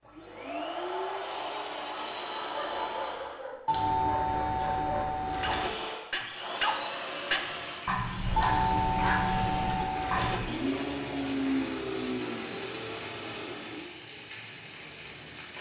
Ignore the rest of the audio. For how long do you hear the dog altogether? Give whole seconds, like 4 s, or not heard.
8 s.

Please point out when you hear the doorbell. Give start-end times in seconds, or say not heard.
3.6-5.7, 8.3-10.3.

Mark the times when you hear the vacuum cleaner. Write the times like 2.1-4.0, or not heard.
0.0-3.5, 5.5-13.9.